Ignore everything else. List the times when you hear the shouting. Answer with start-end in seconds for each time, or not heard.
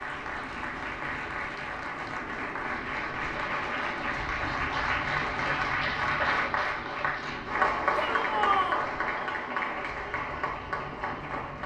8.0-8.8.